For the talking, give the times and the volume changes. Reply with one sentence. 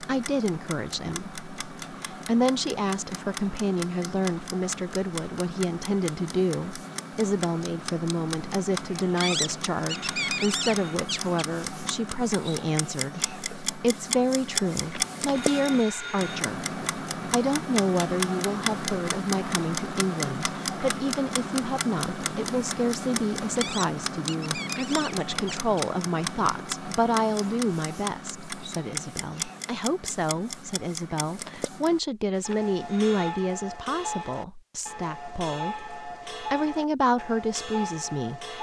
The talking can be heard from 0.0 to 38.5 s, at a steady volume.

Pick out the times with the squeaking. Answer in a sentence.
The squeaking can be heard from 9.2 to 11.4 s and from 23.6 to 25.9 s.